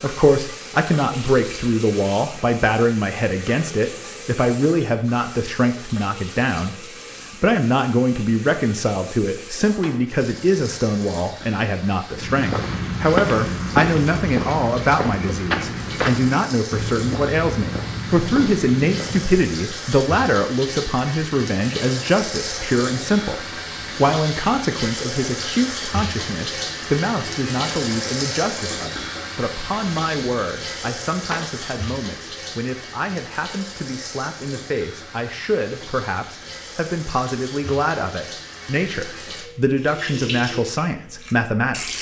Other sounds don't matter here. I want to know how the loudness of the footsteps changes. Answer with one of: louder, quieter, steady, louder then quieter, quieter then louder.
quieter.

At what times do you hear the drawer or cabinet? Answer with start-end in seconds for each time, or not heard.
9.3-10.2, 30.9-31.5.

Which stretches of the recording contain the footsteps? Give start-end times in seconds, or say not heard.
12.1-19.5.